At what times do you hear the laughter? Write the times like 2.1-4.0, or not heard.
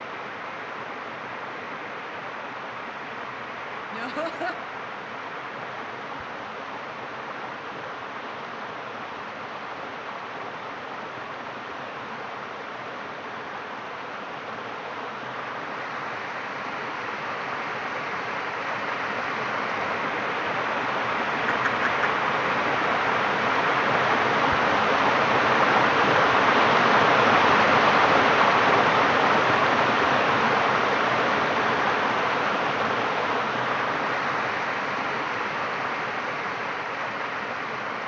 3.9-4.5, 21.4-22.1.